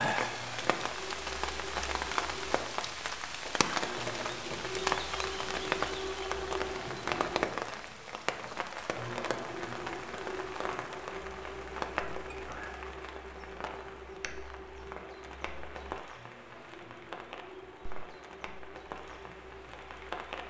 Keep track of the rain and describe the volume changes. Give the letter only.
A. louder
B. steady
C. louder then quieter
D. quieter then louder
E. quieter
E.